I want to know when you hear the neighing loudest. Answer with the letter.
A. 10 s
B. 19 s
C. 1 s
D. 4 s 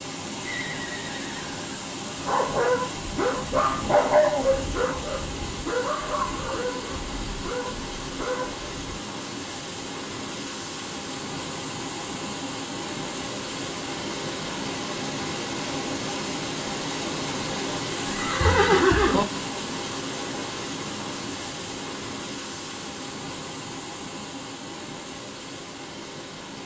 B.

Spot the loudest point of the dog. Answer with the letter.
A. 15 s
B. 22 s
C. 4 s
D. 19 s
C.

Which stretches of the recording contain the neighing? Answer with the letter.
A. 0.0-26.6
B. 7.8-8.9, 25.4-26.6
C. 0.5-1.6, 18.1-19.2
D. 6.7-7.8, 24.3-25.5
C.